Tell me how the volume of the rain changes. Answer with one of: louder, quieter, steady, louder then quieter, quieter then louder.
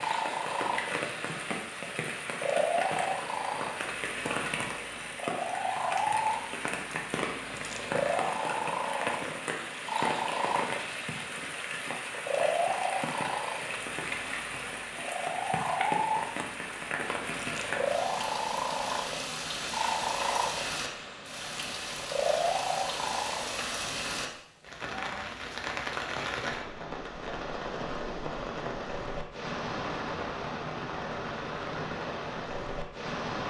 steady.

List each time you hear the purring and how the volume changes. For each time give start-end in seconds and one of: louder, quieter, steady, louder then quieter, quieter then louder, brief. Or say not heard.
0.0-24.2 steady.